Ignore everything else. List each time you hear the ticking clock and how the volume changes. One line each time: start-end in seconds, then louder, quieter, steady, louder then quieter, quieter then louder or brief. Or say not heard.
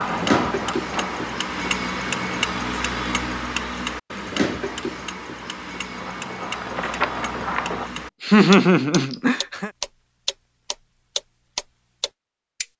0.0-12.7 quieter then louder.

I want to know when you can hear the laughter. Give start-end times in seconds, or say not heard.
8.0-9.7.